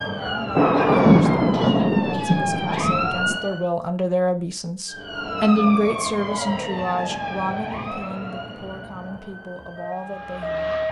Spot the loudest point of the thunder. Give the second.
1 s.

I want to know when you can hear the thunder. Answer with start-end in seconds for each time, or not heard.
0.6-3.4.